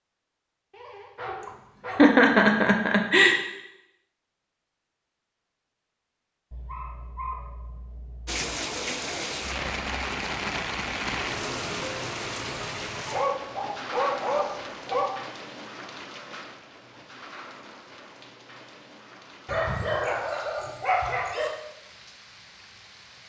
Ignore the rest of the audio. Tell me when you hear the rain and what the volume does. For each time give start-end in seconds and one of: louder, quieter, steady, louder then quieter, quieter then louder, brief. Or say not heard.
8.2-23.2 quieter.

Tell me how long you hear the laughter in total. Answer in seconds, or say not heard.
2 s.